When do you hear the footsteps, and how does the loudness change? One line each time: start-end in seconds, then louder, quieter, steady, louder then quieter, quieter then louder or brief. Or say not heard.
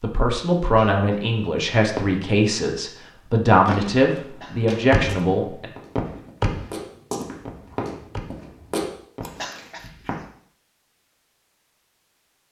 3.6-10.2 quieter then louder.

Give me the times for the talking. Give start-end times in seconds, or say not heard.
0.0-5.7.